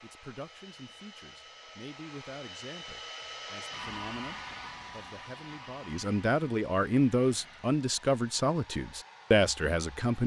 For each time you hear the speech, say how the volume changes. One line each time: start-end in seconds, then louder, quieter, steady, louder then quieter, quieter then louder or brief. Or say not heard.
0.0-10.2 louder.